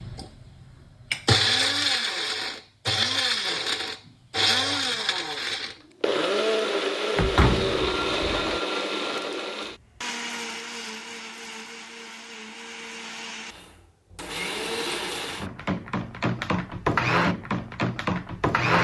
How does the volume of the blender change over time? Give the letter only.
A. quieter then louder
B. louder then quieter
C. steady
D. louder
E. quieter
A.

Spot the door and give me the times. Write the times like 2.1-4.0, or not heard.
7.2-8.6.